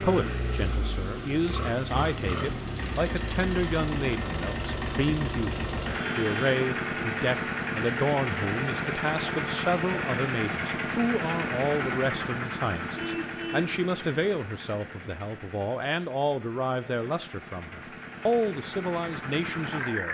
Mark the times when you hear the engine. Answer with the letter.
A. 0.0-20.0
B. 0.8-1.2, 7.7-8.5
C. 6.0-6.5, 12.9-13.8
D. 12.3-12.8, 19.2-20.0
A.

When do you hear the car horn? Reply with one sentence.
You can hear the car horn from 6.0 to 6.5 s and from 12.9 to 13.8 s.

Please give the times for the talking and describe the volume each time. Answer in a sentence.
You can hear the talking from 0.0 to 20.0 s, at a steady volume.